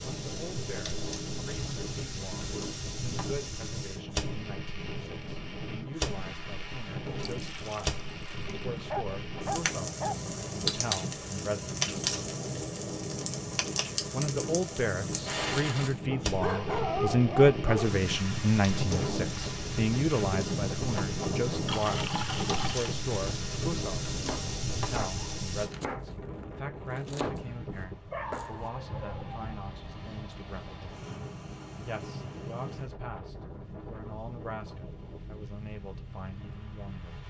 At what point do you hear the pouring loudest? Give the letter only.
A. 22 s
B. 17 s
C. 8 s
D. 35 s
A.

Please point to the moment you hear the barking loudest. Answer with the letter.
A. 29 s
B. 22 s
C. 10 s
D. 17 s
D.